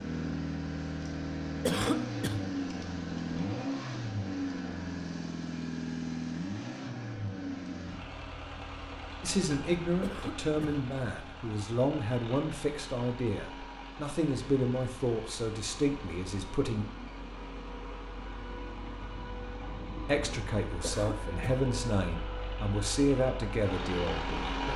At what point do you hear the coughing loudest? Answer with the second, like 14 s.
2 s.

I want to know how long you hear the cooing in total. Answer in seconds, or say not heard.
not heard.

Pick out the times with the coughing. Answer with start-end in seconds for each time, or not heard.
1.6-2.4, 10.0-10.8, 20.8-21.4.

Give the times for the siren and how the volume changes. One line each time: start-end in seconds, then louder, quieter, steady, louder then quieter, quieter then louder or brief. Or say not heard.
not heard.